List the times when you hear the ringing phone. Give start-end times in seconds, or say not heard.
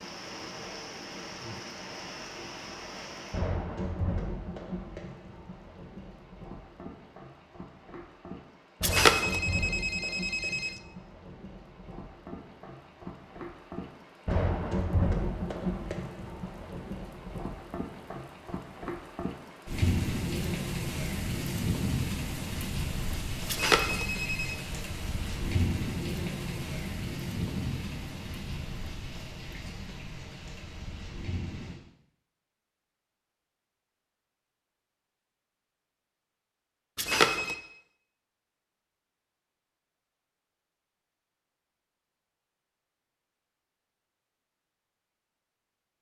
8.8-10.8, 23.4-24.6, 37.0-37.5.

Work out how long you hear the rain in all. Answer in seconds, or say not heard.
32 s.